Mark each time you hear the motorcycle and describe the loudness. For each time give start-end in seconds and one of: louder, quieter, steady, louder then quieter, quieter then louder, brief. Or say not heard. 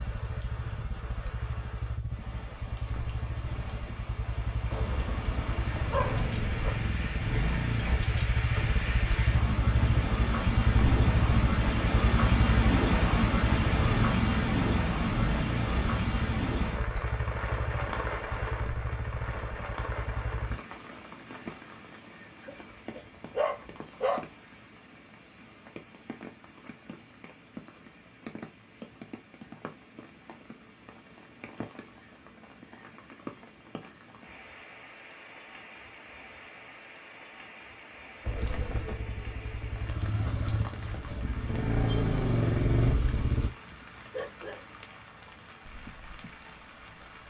0.0-20.6 louder then quieter
38.2-43.5 louder.